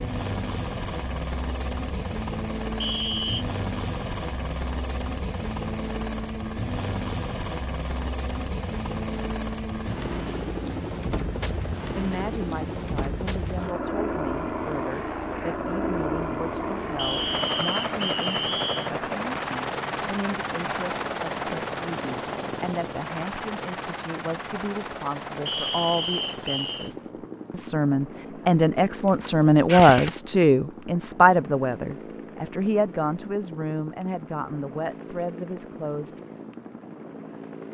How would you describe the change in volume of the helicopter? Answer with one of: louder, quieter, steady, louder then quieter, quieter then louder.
quieter.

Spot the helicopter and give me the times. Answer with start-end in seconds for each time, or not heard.
0.0-37.6.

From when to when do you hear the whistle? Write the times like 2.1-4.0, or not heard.
2.8-3.5, 16.9-18.9, 25.4-26.9.